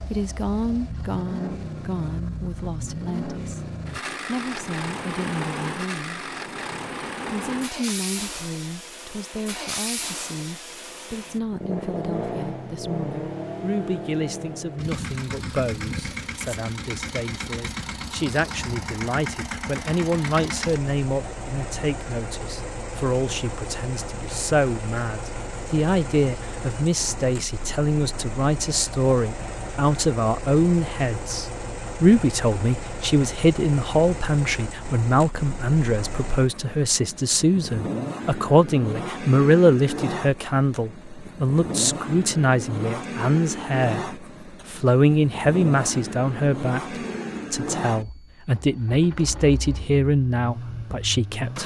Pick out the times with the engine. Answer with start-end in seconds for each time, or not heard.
0.0-51.6.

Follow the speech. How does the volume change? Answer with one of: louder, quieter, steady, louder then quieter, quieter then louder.
louder.